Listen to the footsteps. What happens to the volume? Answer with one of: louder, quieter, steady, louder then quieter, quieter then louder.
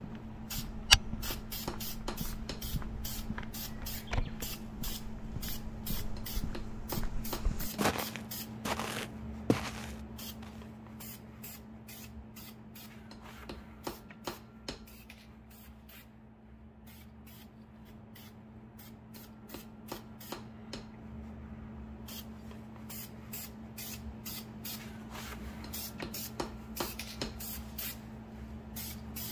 quieter then louder.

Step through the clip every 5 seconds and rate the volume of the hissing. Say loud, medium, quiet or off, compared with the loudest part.
loud, loud, medium, medium, loud, loud.